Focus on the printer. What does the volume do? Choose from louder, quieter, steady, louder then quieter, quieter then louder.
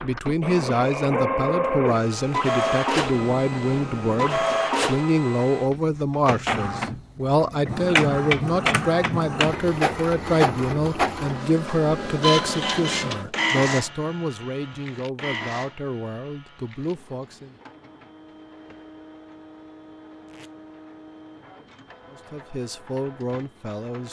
quieter.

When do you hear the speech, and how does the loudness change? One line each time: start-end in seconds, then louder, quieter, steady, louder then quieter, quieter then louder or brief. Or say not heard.
0.0-17.6 quieter
22.1-24.0 brief.